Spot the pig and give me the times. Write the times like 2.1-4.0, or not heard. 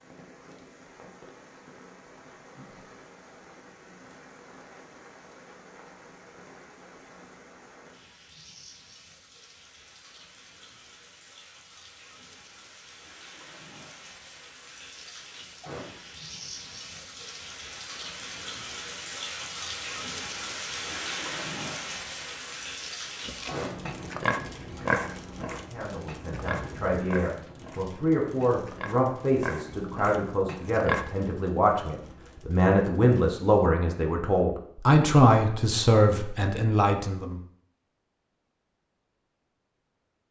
23.2-31.1.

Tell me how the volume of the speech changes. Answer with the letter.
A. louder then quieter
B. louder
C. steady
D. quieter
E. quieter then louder
B.